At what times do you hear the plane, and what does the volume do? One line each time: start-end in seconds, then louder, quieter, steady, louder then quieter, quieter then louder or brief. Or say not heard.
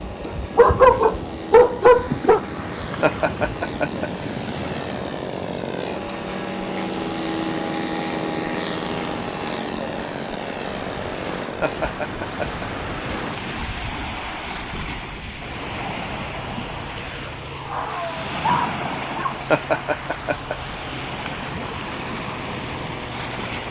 0.0-23.6 louder then quieter.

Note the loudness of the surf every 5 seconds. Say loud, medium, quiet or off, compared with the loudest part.
loud, medium, loud, loud, loud.